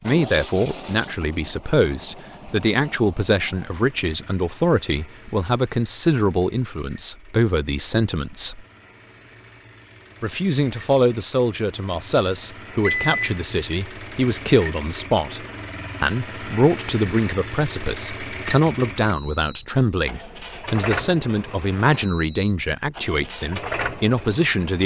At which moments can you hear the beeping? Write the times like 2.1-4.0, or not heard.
12.8-13.3.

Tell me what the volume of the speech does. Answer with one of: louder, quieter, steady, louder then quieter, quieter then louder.
steady.